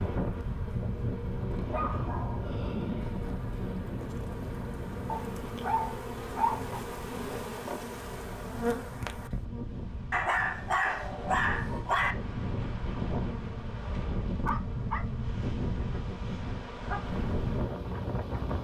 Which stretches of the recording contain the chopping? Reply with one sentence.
You can't hear the chopping here.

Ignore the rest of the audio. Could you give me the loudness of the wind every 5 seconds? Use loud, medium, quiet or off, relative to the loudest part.
loud, medium, loud, loud.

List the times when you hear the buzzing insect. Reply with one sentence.
The buzzing insect can be heard from 0.0 to 10.1 s and from 12.1 to 18.5 s.